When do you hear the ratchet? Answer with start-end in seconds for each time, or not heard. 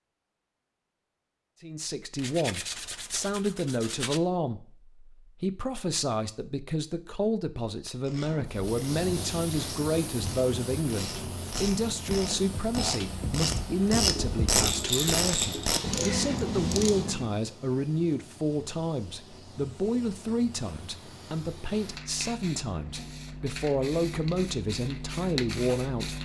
8.0-17.4.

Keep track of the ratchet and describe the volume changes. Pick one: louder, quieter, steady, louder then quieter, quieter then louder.
louder.